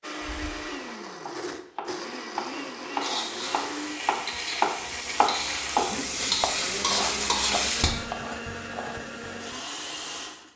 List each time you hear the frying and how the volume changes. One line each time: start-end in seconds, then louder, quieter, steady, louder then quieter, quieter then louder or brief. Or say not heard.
3.0-7.9 louder.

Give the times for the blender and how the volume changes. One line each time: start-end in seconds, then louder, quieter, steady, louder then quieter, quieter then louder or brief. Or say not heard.
0.0-10.5 steady.